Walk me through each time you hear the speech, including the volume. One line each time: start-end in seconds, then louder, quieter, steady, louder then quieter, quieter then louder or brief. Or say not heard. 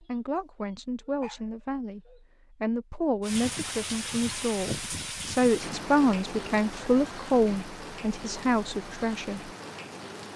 0.0-9.5 louder.